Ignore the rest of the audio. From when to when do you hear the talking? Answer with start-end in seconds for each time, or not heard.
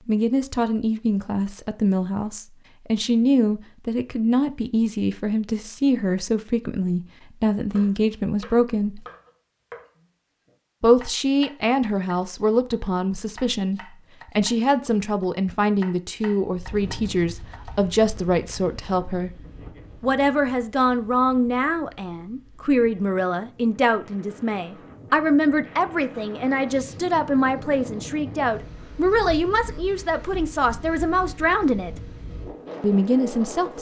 0.1-9.0, 10.8-19.4, 20.0-31.9, 32.8-33.7.